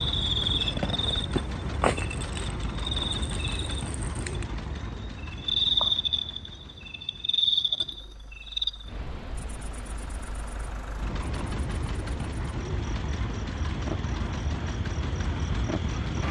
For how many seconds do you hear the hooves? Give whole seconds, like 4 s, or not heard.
not heard.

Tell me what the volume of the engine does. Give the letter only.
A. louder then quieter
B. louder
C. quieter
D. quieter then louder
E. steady
D.